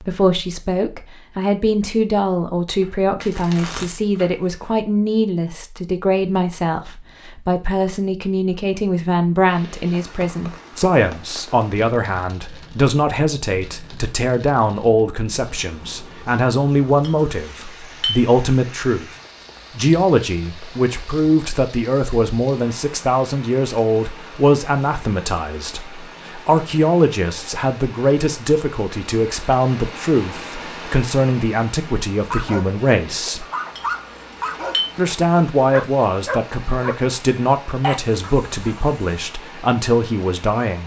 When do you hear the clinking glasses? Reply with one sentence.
The clinking glasses can be heard from 17.0 to 18.1 s and from 33.8 to 34.9 s.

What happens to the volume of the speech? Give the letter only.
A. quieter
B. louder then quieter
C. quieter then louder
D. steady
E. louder
D.